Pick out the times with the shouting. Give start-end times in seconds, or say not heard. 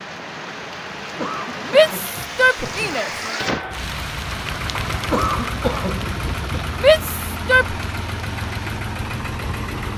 1.6-3.1, 6.8-7.8.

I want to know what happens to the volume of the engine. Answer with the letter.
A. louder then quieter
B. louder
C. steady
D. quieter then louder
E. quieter
C.